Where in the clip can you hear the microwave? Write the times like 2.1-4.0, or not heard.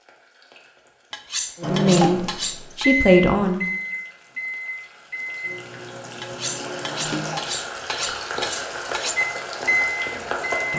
1.6-7.5, 9.2-10.7.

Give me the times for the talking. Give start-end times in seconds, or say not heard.
1.6-3.6.